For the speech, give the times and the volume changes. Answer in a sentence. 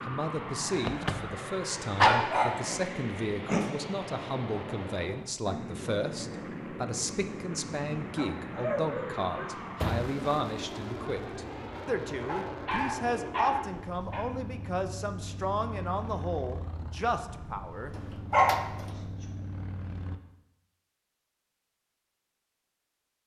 You can hear the speech from 0.0 to 17.9 s, at a steady volume.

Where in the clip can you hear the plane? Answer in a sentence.
You can hear the plane from 0.0 to 20.2 s.